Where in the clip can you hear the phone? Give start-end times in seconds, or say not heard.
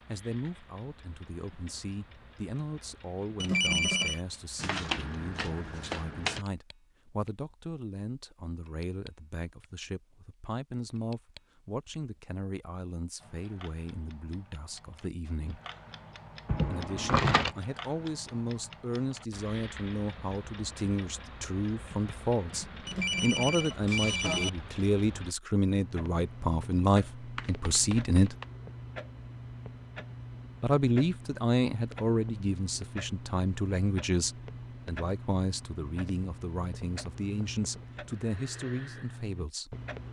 3.4-4.2, 22.9-24.5.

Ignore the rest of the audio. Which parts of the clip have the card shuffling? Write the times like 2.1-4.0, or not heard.
4.5-6.5, 16.4-17.6, 27.4-28.4.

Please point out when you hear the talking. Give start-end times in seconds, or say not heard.
0.1-15.6, 16.6-28.4, 30.6-39.8.